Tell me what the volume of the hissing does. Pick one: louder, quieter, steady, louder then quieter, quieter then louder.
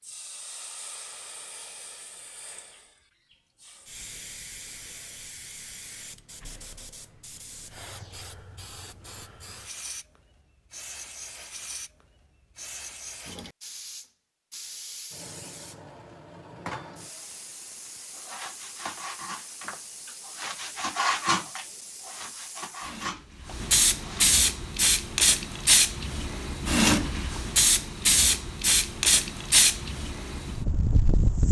louder.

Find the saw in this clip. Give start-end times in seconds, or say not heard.
18.1-24.4.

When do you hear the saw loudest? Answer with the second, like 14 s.
21 s.